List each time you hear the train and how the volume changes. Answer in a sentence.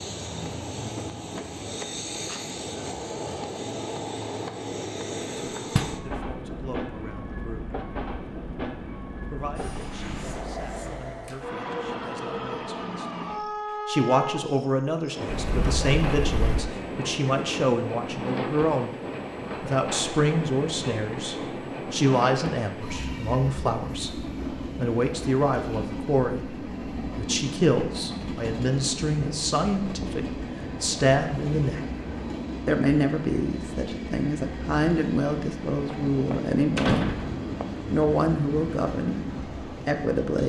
The train can be heard from 0.0 to 40.4 s, at a steady volume.